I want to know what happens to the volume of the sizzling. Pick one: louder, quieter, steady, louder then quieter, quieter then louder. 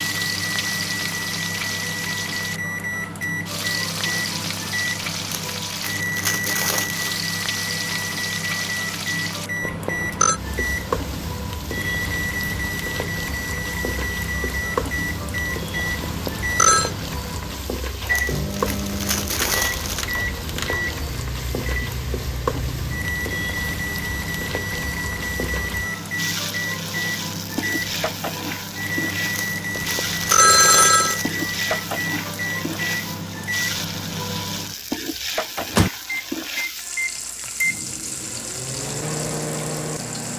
steady.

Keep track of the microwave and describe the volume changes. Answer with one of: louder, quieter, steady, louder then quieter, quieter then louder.
steady.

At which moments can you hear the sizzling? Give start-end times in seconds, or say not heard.
0.0-40.3.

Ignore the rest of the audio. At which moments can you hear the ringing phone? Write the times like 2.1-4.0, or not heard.
9.6-10.4, 16.1-16.9, 29.8-31.2.